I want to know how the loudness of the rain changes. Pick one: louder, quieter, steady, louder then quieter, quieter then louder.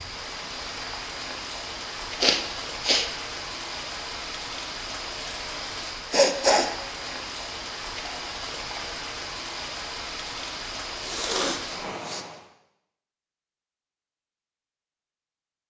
steady.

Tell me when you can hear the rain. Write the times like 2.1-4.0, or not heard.
0.0-12.4.